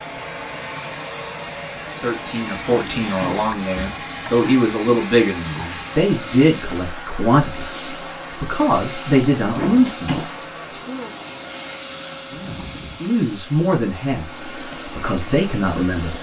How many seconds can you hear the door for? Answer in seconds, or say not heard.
2 s.